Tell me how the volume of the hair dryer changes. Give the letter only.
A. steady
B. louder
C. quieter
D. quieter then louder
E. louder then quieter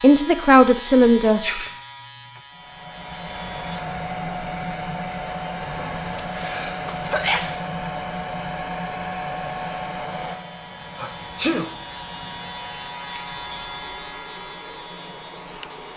C.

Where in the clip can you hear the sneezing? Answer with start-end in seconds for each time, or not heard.
1.2-1.8, 6.2-7.6, 10.9-11.7.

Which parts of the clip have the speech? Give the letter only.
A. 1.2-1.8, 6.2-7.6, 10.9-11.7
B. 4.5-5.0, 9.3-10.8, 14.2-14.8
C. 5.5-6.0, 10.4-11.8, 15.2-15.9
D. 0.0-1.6
D.